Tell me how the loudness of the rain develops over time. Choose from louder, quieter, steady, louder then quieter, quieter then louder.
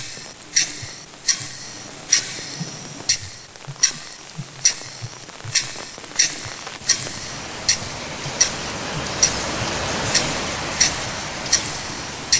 louder.